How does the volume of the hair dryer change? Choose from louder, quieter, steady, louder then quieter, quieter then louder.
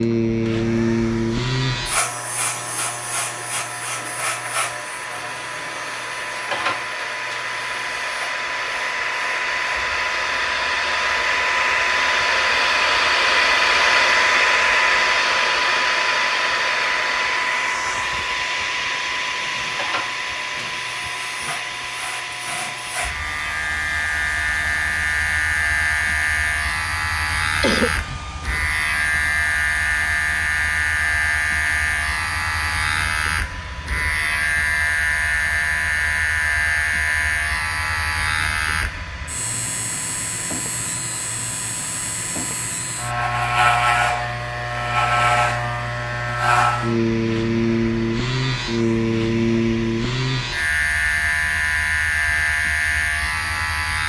louder then quieter.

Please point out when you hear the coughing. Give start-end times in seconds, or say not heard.
27.6-28.2.